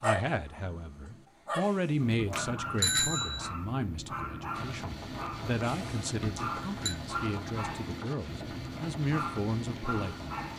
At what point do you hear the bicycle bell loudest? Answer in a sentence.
The loudest moment of the bicycle bell is at 3 seconds.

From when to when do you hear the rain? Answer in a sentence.
You can hear the rain from 4.5 to 10.5 s.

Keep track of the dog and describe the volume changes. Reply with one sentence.
The loudness of the dog stays about the same.